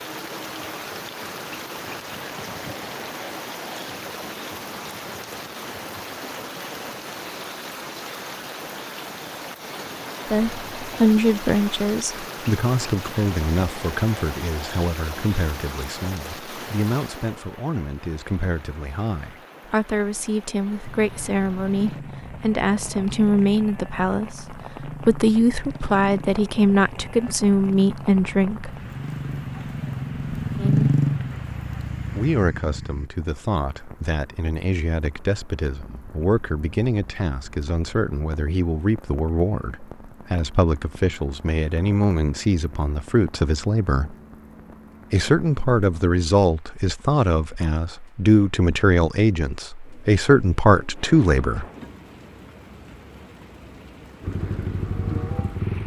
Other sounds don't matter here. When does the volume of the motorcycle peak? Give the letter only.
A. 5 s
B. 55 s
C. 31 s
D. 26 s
C.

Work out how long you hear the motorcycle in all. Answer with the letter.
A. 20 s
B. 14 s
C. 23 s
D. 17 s
B.